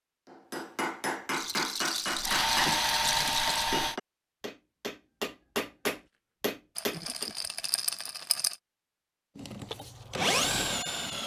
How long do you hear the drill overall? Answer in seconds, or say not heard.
4 s.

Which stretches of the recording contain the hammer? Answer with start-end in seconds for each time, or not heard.
0.3-7.3.